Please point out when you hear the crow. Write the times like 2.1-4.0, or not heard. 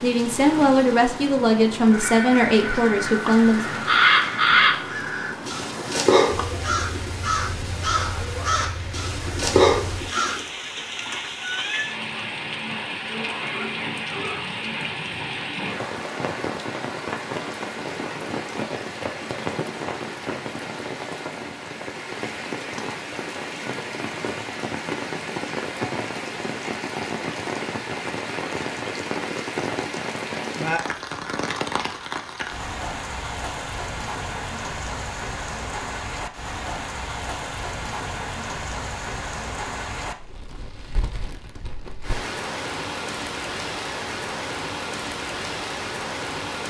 1.9-10.4.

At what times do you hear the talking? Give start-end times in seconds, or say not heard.
0.0-3.6.